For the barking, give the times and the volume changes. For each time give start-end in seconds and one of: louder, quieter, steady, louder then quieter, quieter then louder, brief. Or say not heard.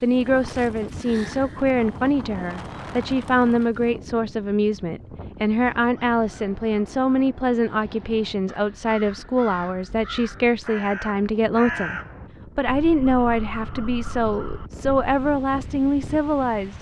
not heard.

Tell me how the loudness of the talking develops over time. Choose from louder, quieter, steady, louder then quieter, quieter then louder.
steady.